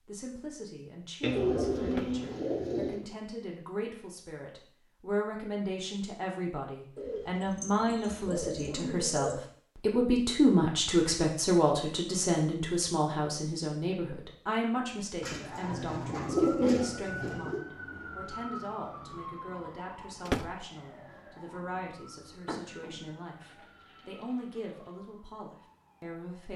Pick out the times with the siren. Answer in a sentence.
The siren can be heard from 15.3 to 26.5 s.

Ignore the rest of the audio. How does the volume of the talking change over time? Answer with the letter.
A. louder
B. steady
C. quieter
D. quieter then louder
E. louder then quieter
E.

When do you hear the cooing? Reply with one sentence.
The cooing can be heard from 1.2 to 3.0 s, from 7.0 to 9.4 s, from 15.2 to 17.6 s and from 22.4 to 24.9 s.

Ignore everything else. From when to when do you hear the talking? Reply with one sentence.
You can hear the talking from 0.0 to 26.5 s.